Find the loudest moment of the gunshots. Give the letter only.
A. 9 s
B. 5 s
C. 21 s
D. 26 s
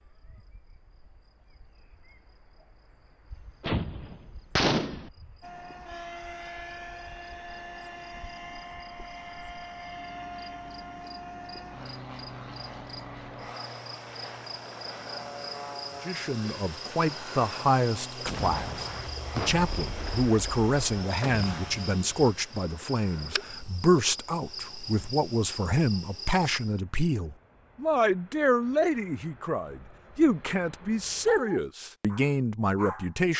B.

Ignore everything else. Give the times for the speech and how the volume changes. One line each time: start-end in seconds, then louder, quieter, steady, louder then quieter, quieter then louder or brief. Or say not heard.
16.0-33.3 steady.